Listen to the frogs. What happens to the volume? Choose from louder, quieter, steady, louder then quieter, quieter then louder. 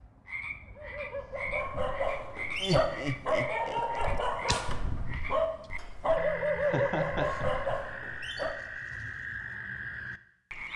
steady.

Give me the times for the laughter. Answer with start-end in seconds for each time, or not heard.
2.5-3.8, 6.6-7.8.